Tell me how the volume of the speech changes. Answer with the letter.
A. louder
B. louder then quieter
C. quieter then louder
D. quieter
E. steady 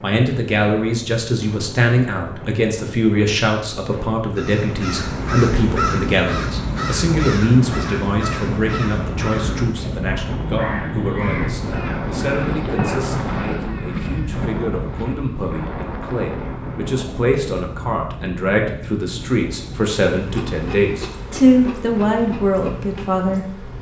C.